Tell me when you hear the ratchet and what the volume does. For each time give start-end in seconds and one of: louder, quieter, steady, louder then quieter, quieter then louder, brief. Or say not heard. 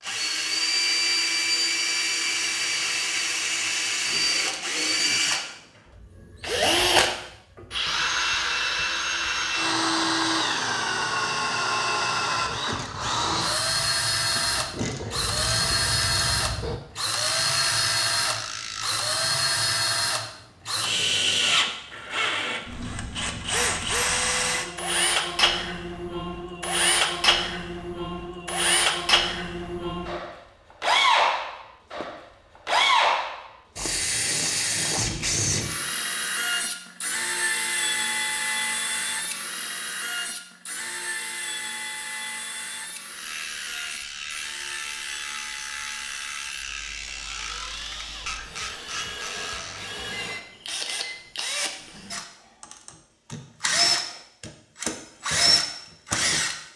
12.3-19.1 louder
43.0-50.0 steady.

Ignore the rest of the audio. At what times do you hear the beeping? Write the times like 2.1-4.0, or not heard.
50.2-51.2.